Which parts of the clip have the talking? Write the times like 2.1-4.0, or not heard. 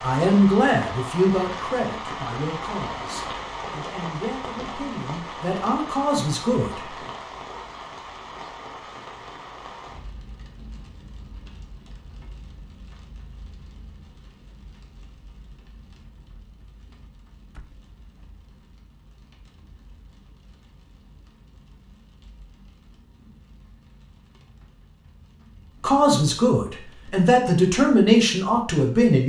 0.0-6.8, 25.8-29.2.